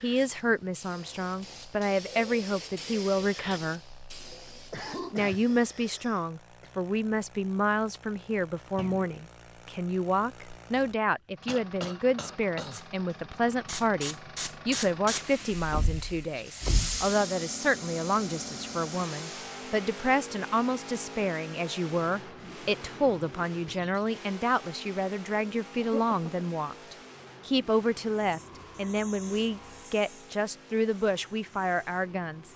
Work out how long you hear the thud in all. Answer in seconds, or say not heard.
2 s.